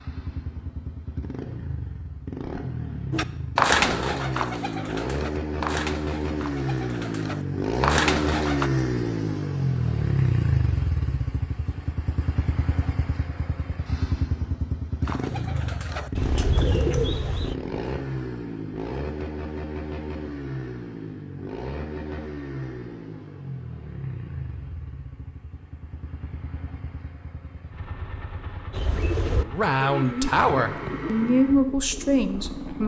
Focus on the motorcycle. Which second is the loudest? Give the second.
10 s.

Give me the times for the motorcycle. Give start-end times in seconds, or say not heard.
0.0-32.8.